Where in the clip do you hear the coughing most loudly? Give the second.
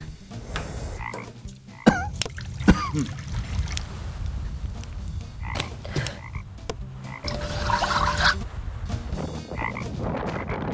2 s.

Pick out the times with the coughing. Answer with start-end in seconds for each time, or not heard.
1.4-3.1, 5.5-6.2.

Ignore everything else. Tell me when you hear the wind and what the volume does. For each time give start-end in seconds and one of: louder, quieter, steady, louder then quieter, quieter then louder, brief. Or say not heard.
3.2-10.7 quieter then louder.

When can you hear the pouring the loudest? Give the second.
8 s.